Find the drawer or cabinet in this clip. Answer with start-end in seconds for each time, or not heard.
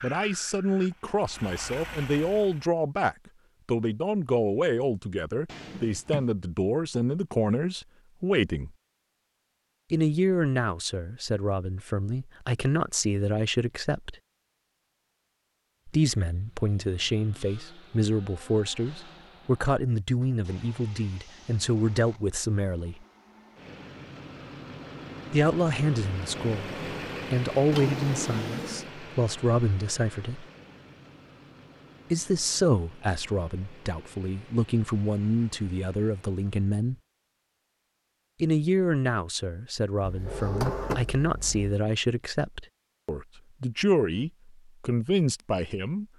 5.5-6.2, 27.7-28.9, 40.0-41.8.